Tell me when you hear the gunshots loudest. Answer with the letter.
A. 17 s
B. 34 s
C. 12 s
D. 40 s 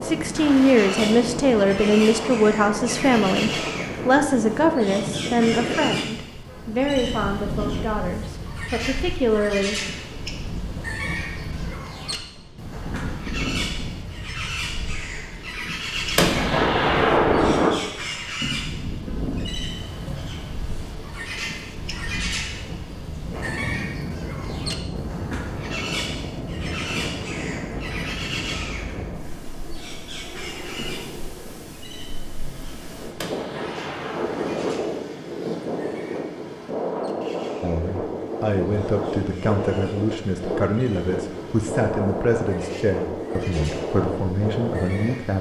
A.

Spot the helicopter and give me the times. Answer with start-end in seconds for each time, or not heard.
not heard.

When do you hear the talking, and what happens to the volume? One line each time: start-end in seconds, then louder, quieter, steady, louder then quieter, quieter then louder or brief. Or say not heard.
0.0-9.8 quieter
37.6-45.3 steady.